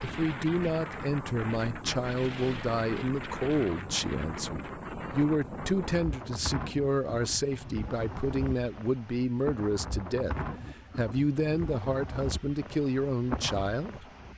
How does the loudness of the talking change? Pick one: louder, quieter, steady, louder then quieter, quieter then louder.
steady.